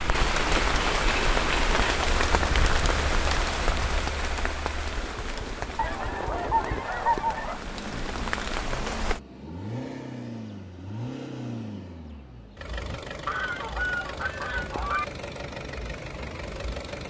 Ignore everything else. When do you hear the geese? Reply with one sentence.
The geese can be heard from 2.4 to 4.0 s, from 5.8 to 7.6 s and from 13.2 to 15.1 s.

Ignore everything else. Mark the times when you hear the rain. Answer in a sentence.
The rain can be heard from 0.0 to 9.2 s.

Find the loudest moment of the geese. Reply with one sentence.
The volume of the geese peaks at 7 seconds.